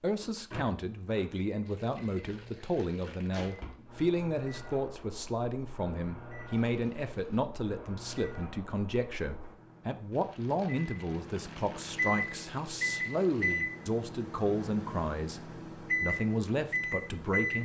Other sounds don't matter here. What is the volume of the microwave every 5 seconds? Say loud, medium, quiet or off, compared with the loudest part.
quiet, quiet, loud, loud.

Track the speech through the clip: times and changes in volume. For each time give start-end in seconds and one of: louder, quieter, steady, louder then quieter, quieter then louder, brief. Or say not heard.
0.0-17.6 steady.